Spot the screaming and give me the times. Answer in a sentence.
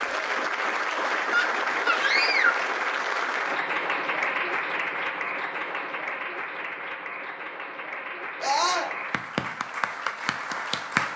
The screaming can be heard from 1.3 to 2.6 s and from 8.4 to 8.9 s.